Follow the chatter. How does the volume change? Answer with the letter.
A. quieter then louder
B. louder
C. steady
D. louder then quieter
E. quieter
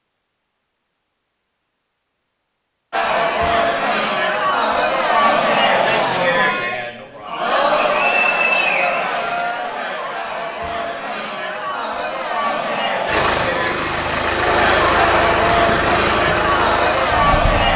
A.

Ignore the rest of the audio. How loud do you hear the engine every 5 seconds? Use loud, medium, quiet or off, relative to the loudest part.
off, off, loud, loud.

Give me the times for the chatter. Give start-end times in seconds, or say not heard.
2.9-17.7.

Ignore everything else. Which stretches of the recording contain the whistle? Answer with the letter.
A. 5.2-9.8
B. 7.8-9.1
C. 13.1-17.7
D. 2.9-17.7
B.